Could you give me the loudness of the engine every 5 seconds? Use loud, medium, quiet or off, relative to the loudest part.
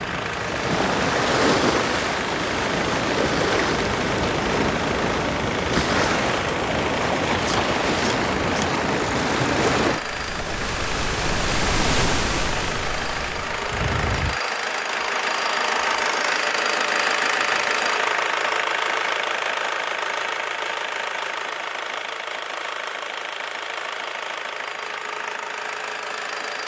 medium, medium, medium, loud, medium, medium.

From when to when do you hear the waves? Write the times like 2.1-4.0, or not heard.
0.0-14.4.